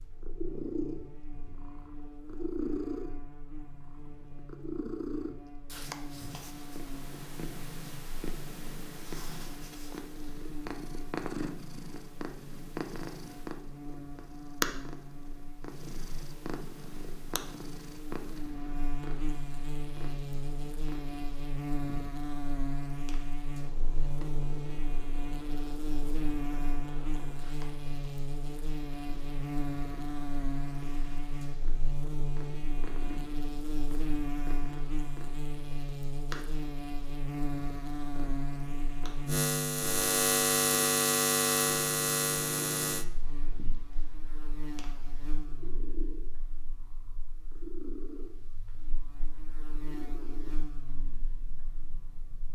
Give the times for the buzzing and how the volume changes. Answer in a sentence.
The buzzing can be heard from 0.0 to 52.5 s, getting louder then quieter.